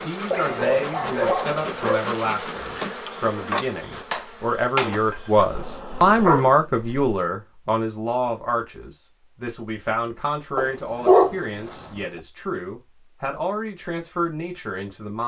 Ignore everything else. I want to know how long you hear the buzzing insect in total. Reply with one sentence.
You can hear the buzzing insect for 7 seconds altogether.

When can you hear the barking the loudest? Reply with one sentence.
The volume of the barking peaks at 11 seconds.